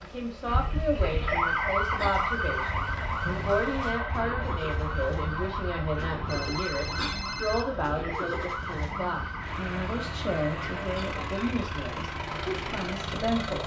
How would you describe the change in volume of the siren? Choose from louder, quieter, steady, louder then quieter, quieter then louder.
quieter.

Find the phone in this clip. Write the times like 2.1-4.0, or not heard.
6.2-7.7.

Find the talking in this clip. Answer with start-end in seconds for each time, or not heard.
0.0-13.6.